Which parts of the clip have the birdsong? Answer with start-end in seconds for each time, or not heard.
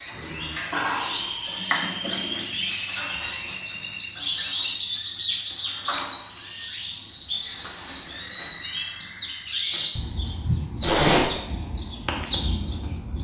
0.0-13.1.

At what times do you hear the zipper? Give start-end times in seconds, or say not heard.
10.8-11.3.